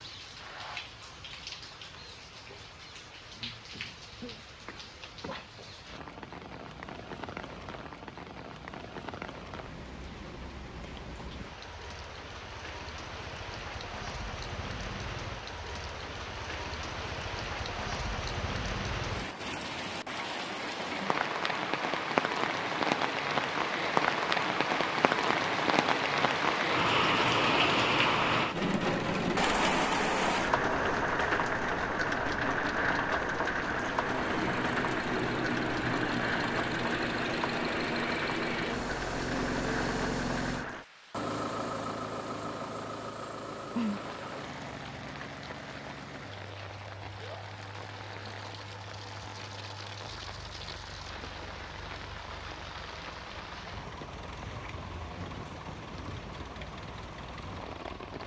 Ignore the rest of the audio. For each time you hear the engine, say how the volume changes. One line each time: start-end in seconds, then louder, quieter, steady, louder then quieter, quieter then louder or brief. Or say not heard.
34.0-58.2 quieter.